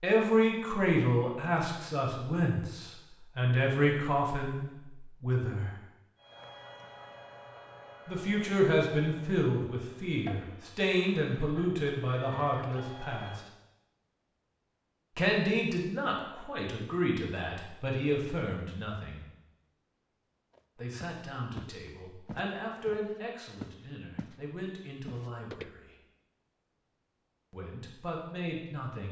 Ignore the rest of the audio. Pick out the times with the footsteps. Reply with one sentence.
You can hear the footsteps from 20.6 to 24.4 s and from 25.1 to 25.7 s.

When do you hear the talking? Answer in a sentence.
The talking can be heard from 0.0 to 5.7 s, from 8.1 to 13.4 s, from 15.2 to 19.2 s, from 20.8 to 25.9 s and from 27.5 to 29.0 s.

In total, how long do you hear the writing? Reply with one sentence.
The writing can't be heard in this clip.